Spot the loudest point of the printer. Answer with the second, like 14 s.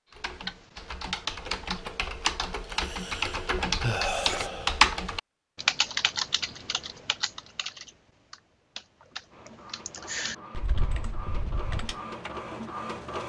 13 s.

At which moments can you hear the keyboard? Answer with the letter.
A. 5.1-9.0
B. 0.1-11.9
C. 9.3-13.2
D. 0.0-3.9
B.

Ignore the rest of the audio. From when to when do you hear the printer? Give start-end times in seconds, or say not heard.
9.3-13.2.